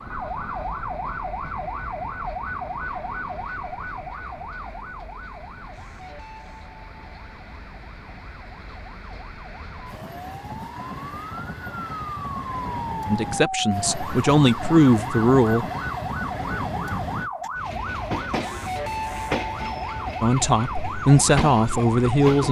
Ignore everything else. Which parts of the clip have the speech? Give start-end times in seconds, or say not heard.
13.1-15.7, 20.2-22.4.